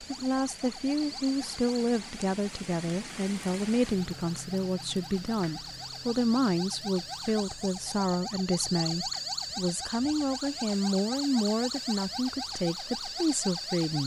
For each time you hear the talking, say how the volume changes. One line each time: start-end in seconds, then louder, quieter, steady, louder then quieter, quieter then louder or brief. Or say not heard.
0.0-14.0 steady.